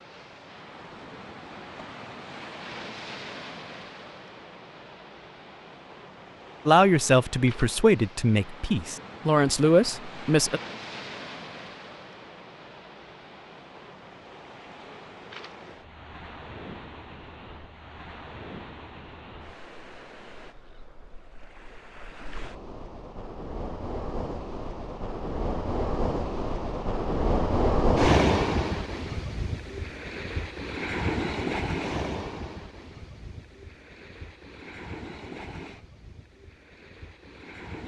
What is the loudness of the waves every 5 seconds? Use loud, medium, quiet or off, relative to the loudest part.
quiet, quiet, quiet, quiet, quiet, loud, medium, quiet.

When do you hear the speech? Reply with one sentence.
The speech can be heard from 6.7 to 10.6 s.